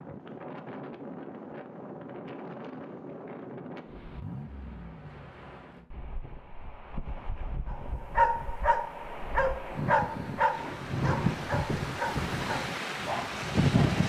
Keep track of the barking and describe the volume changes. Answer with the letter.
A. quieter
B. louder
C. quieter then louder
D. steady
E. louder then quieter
A.